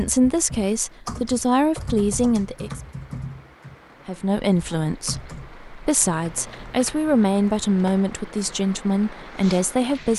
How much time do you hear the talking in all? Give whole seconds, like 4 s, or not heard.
9 s.